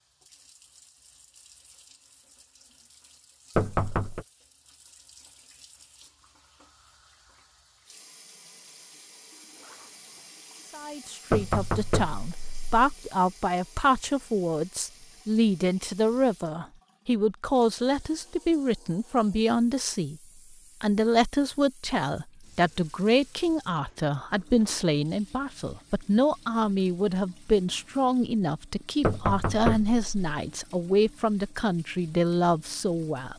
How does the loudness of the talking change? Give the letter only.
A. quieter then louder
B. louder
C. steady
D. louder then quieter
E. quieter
C.